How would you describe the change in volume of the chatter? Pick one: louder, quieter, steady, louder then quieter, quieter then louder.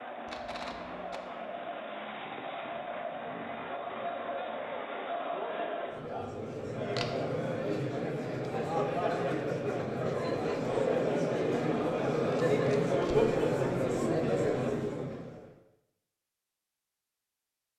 louder.